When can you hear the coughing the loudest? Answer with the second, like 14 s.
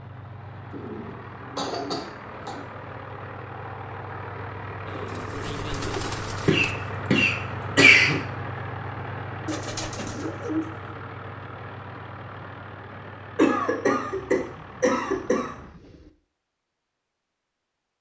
8 s.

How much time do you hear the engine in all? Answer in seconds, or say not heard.
16 s.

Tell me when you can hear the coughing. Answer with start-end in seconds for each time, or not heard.
1.6-2.5, 6.5-8.2, 13.3-15.5.